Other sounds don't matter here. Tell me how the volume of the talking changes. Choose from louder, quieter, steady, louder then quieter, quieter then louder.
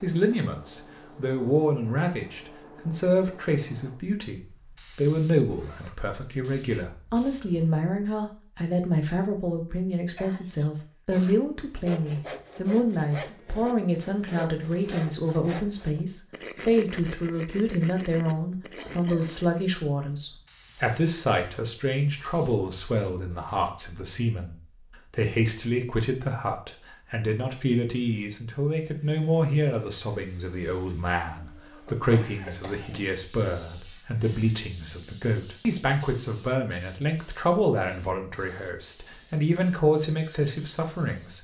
steady.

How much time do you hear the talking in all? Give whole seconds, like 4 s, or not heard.
41 s.